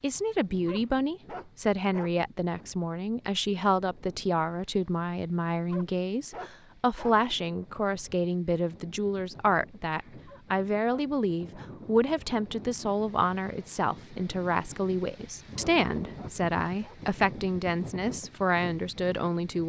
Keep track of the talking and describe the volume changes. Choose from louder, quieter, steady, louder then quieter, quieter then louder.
steady.